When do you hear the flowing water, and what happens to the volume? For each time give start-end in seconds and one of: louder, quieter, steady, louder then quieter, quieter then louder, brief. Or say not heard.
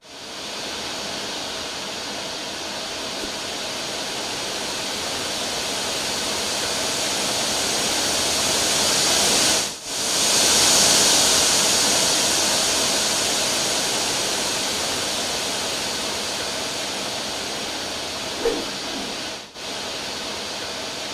0.0-21.0 louder then quieter.